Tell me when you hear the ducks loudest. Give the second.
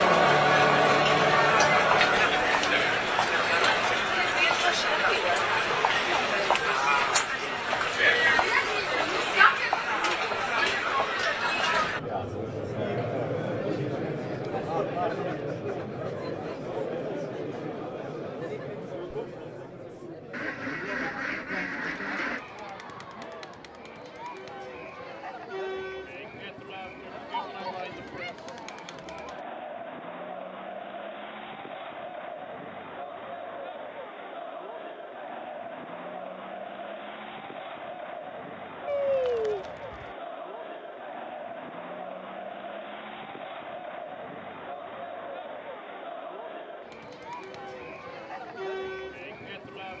39 s.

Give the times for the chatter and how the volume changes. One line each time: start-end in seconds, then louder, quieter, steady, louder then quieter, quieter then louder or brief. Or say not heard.
0.0-49.9 quieter.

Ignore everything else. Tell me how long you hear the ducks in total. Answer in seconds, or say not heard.
3 s.